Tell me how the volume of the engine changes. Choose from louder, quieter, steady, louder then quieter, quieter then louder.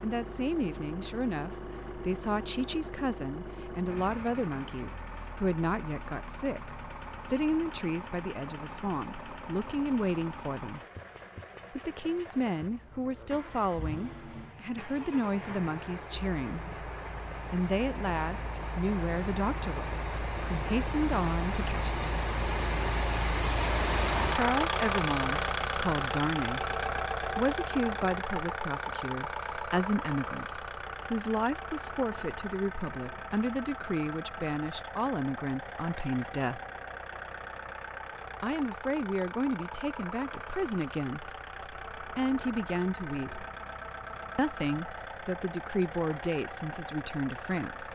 louder then quieter.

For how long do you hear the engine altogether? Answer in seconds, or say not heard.
48 s.